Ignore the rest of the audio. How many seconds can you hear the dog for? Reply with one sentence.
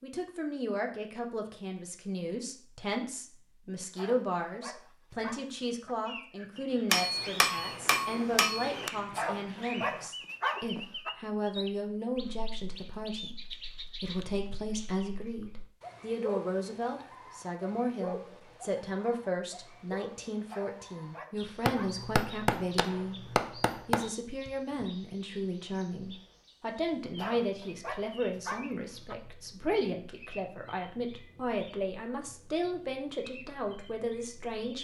The dog can be heard for 8 seconds in total.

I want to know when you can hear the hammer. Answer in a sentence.
The hammer can be heard from 6.9 to 8.9 s and from 21.6 to 24.1 s.